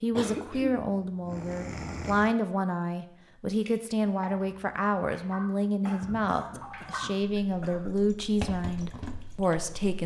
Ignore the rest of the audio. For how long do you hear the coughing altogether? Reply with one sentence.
The coughing can be heard for 4 seconds in total.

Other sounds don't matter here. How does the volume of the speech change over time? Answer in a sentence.
The volume of the speech stays about the same.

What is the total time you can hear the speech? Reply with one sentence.
The speech can be heard for 10 seconds in total.